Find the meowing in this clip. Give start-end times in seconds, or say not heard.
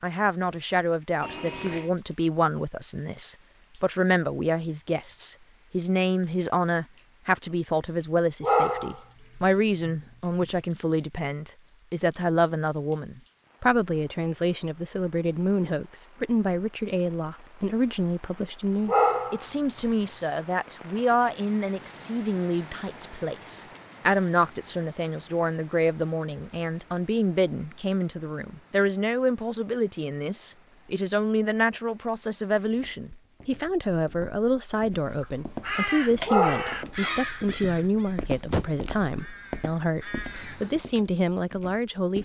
1.2-1.9.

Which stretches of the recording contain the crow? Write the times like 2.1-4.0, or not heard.
35.1-40.9.